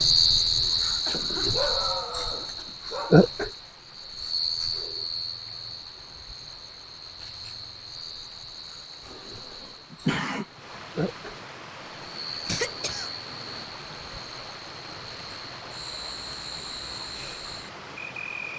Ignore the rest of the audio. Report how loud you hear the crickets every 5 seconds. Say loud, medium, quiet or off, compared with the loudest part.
loud, quiet, quiet, quiet.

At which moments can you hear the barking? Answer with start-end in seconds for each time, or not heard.
1.4-3.4.